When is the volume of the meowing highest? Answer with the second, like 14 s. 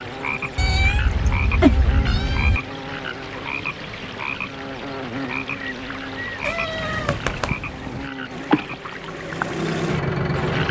2 s.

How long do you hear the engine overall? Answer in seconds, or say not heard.
2 s.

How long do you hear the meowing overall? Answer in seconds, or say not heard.
4 s.